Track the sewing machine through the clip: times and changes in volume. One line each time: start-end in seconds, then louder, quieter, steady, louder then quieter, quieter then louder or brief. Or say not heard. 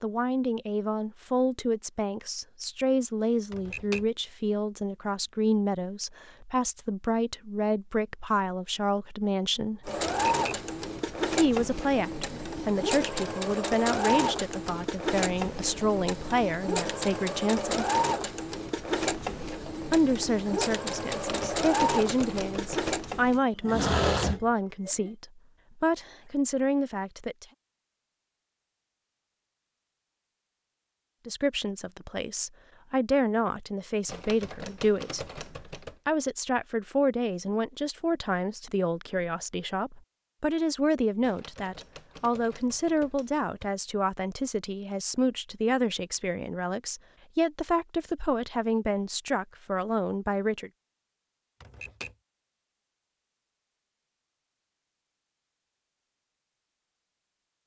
9.8-25.1 steady.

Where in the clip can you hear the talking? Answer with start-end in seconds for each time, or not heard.
0.0-9.9, 11.3-17.9, 19.9-27.4, 31.2-35.3, 36.0-50.7.